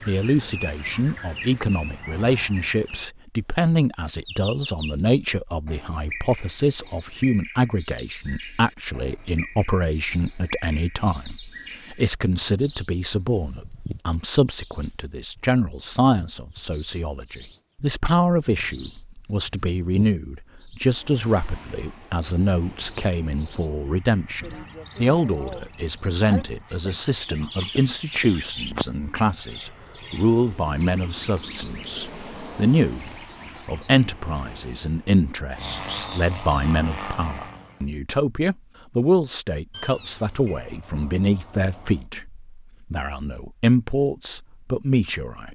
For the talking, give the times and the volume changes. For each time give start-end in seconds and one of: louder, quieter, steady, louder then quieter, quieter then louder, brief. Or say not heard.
0.1-45.5 steady.